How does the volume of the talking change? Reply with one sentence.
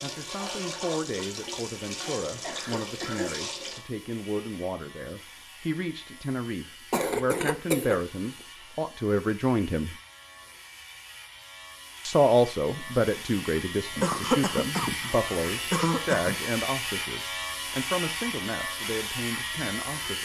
The volume of the talking goes up, then down.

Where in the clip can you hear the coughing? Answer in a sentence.
You can hear the coughing from 2.2 to 3.3 s, from 6.9 to 8.0 s and from 14.0 to 16.4 s.